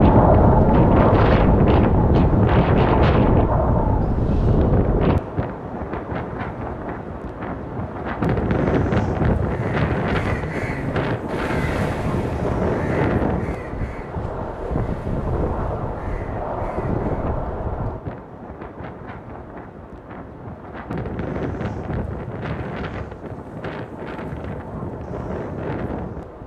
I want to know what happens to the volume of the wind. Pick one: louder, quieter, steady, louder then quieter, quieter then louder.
quieter.